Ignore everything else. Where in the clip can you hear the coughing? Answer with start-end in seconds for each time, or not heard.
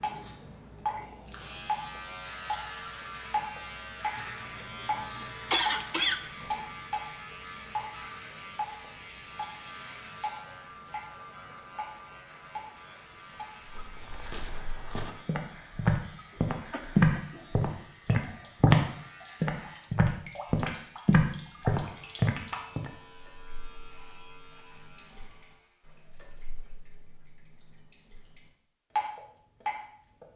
4.2-6.2, 16.4-17.1, 21.9-22.9.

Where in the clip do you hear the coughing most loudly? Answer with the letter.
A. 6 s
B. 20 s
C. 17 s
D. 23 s
A.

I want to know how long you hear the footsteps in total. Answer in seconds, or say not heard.
9 s.